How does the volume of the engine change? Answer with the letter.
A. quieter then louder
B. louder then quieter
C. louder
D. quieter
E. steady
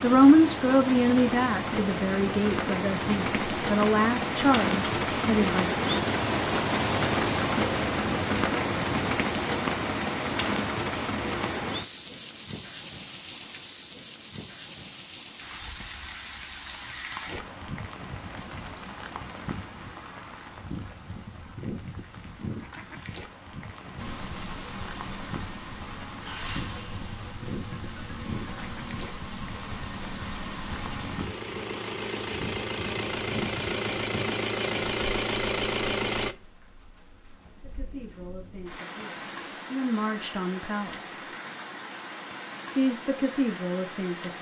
C.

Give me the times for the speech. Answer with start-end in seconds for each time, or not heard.
0.0-5.8, 37.6-41.2, 42.6-44.3.